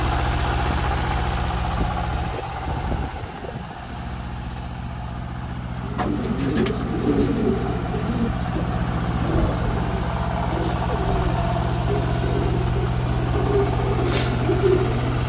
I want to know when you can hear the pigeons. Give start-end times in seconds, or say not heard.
5.8-15.2.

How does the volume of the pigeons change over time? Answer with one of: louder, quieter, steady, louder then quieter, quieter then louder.
quieter then louder.